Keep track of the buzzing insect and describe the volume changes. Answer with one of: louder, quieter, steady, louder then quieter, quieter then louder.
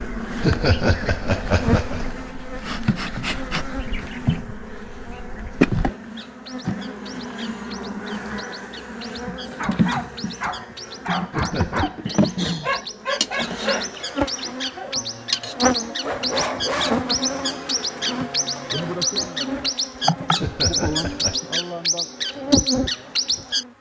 steady.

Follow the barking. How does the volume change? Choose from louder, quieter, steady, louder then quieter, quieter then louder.
quieter then louder.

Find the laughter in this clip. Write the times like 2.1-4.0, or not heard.
0.4-2.1, 11.3-12.0, 20.4-21.4.